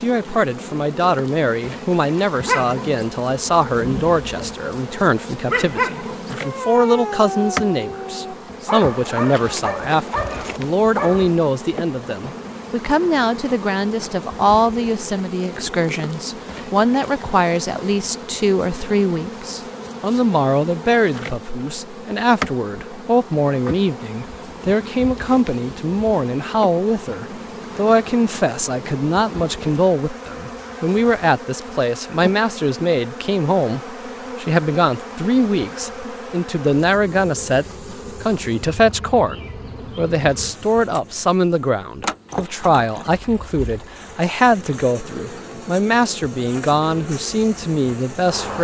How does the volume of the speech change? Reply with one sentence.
The loudness of the speech stays about the same.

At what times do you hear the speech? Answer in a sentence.
The speech can be heard from 0.0 to 48.5 s.